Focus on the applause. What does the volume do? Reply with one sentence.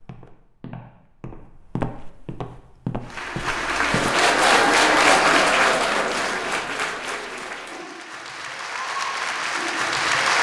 The loudness of the applause goes down, then up.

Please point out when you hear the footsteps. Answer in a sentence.
The footsteps can be heard from 0.0 to 4.2 s.